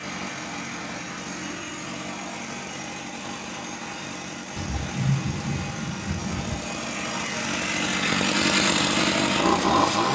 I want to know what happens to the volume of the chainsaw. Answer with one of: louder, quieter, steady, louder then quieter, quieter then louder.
louder.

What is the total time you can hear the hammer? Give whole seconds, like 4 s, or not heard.
not heard.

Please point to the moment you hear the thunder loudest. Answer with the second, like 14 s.
5 s.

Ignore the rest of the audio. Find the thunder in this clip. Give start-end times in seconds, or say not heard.
4.5-6.5.